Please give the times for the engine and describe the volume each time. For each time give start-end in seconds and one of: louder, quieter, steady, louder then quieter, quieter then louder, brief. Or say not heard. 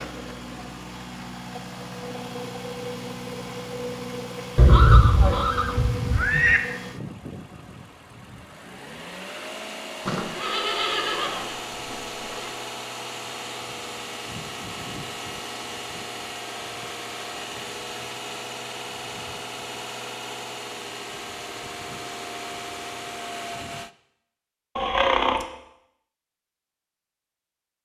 0.0-23.9 steady.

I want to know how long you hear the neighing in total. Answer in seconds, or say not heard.
5 s.